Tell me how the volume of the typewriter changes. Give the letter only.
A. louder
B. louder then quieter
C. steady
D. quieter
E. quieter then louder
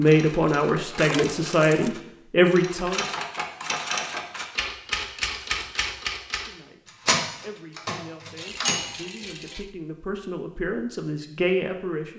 A.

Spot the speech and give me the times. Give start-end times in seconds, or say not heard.
0.0-3.0, 6.3-12.1.